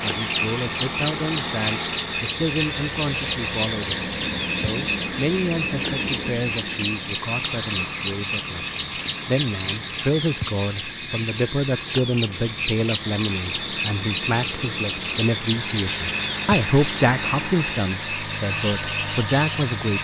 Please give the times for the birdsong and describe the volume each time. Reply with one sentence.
You can hear the birdsong from 0.0 to 19.9 s, at a steady volume.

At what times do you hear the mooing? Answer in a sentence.
You can't hear the mooing here.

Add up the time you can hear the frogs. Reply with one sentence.
You can hear the frogs for 20 seconds altogether.